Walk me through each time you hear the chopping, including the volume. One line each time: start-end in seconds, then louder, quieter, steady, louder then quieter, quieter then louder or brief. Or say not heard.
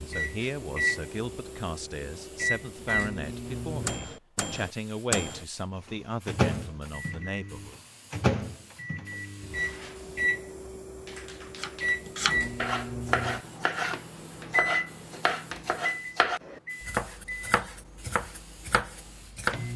11.6-19.6 quieter.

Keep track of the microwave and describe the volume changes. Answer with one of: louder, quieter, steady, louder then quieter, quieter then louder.
quieter.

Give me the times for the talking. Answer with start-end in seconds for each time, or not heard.
0.1-7.8.